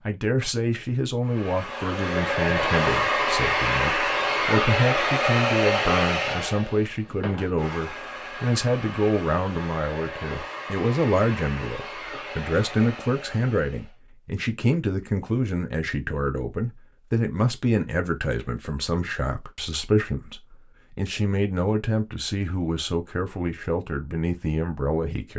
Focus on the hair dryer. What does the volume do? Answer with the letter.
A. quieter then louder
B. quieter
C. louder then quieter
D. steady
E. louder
B.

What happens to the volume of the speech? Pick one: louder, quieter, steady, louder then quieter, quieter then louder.
steady.